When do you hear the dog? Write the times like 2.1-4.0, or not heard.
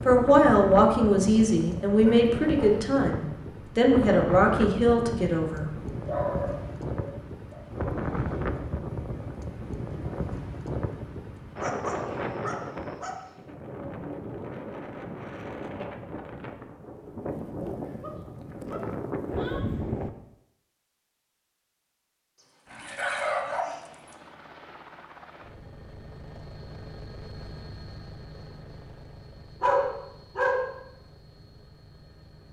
2.0-2.8, 6.0-7.6, 11.6-13.2, 18.0-19.6, 22.7-24.1, 29.6-30.7.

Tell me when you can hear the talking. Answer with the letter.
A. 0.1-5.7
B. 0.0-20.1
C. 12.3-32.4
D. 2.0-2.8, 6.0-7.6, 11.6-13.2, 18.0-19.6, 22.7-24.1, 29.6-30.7
A.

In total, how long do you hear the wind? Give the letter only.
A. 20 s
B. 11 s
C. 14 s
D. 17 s
A.